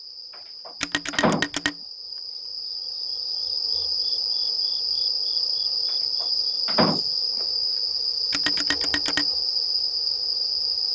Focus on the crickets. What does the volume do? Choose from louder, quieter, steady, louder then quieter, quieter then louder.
louder.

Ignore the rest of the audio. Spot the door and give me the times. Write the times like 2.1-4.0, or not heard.
0.7-1.4, 6.2-7.0.